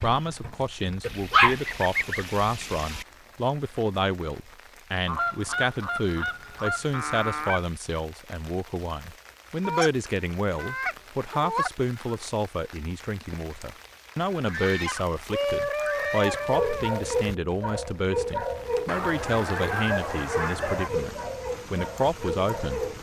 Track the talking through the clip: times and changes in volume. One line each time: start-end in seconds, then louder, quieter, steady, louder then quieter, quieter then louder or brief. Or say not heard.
0.0-22.9 steady.